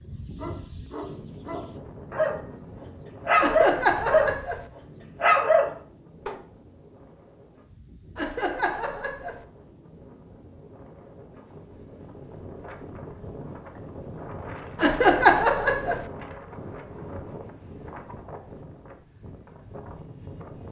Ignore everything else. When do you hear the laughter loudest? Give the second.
15 s.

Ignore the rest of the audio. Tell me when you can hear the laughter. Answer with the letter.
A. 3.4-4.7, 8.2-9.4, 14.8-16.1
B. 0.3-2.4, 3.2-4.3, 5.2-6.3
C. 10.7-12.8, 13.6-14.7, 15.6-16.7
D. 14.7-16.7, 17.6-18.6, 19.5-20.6
A.